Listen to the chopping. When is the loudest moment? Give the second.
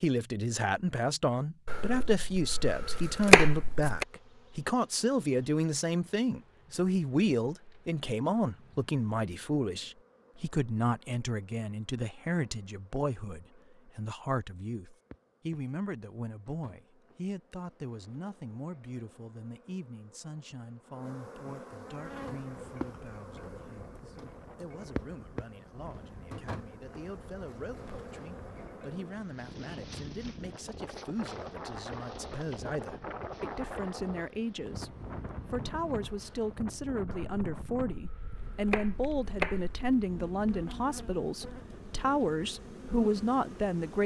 3 s.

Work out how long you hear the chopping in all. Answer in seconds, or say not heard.
5 s.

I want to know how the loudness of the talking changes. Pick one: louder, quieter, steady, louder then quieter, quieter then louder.
quieter then louder.